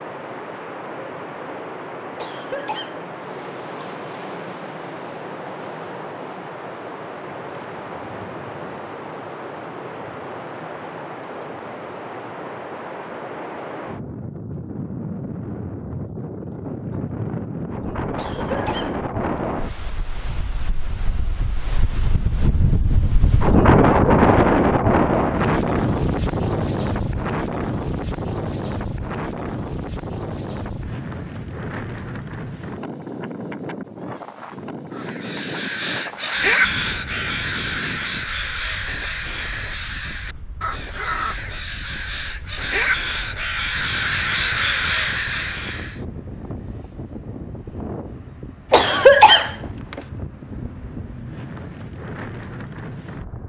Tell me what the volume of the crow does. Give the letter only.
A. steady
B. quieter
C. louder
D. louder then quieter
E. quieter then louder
E.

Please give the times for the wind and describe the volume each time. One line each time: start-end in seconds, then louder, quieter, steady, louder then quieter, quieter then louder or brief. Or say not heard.
0.0-53.4 louder then quieter.